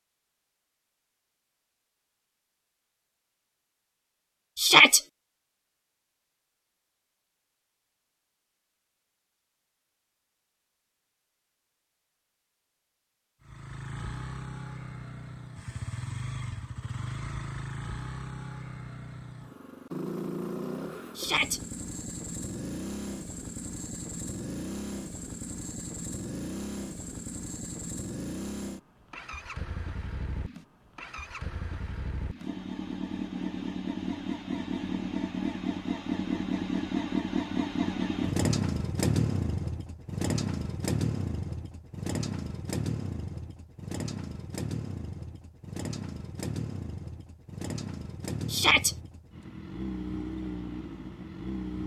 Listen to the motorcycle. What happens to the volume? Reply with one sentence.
The volume of the motorcycle goes up, then down.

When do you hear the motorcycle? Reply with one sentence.
You can hear the motorcycle from 13.4 to 51.8 s.